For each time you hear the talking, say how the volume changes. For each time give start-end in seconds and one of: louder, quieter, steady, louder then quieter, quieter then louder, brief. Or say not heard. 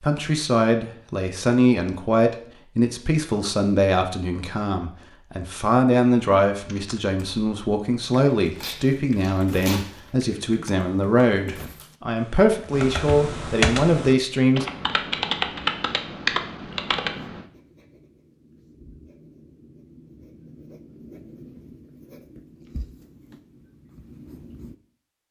0.0-14.7 steady.